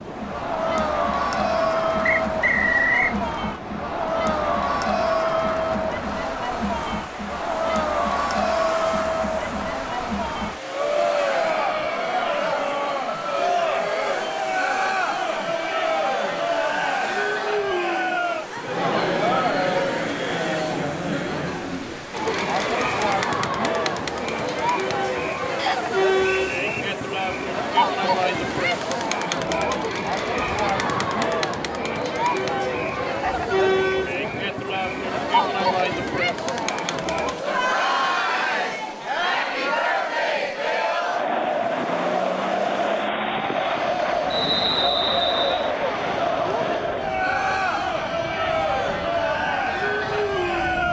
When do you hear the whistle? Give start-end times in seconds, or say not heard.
2.0-3.1, 25.6-26.7, 44.3-45.7.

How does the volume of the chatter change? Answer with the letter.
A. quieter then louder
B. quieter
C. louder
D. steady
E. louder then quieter
D.